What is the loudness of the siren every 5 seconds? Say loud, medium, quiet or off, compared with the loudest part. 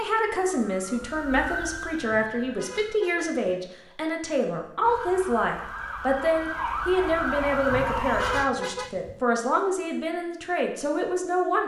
medium, loud, off.